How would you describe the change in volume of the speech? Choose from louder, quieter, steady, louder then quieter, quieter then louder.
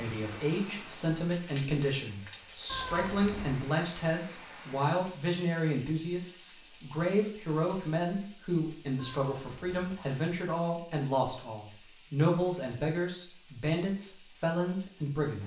steady.